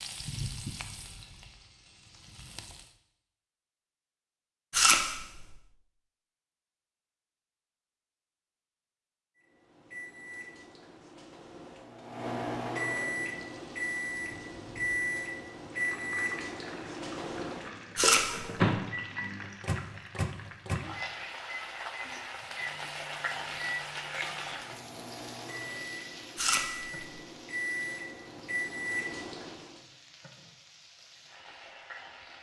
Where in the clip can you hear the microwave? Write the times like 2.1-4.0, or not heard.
9.6-29.8.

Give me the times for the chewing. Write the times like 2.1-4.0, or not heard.
4.7-5.5, 17.9-18.7, 26.4-27.0.